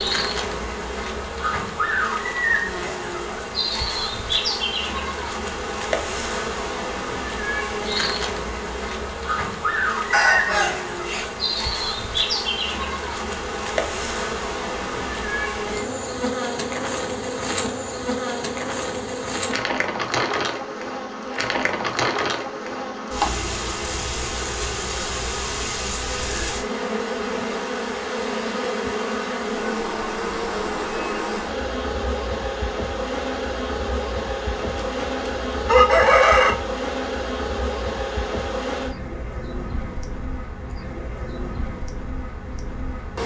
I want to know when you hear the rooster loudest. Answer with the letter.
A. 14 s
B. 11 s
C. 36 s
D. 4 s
C.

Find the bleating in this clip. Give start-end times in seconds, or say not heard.
not heard.